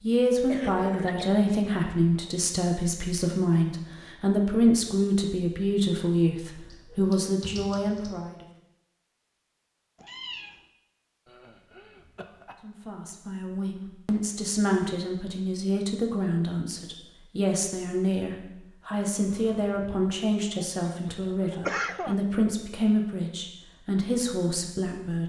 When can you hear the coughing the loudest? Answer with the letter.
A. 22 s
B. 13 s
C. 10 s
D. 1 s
A.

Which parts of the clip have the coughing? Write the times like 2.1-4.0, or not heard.
0.5-1.4, 11.2-12.7, 20.6-22.2.